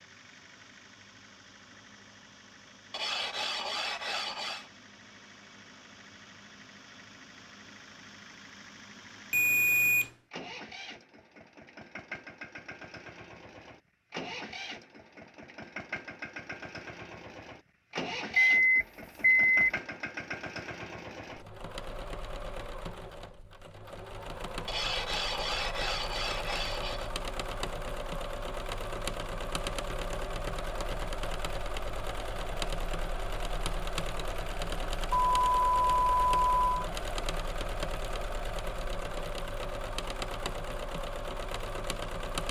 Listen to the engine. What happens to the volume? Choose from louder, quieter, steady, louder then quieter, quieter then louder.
louder.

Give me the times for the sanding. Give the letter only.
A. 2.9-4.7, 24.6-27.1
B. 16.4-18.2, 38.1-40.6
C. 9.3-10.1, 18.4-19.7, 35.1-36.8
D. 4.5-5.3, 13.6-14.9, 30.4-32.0
A.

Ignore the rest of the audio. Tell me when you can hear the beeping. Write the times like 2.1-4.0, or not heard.
9.3-10.1, 18.4-19.7, 35.1-36.8.